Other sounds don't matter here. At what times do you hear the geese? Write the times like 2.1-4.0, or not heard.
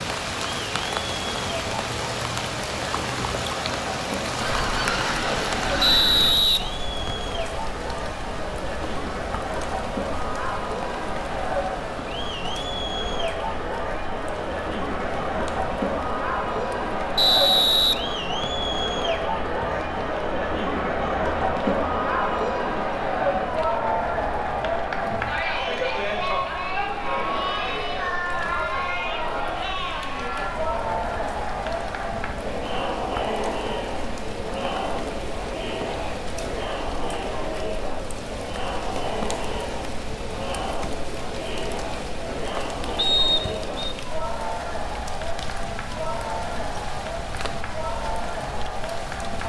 4.4-6.4.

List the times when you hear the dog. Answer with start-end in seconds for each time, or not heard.
not heard.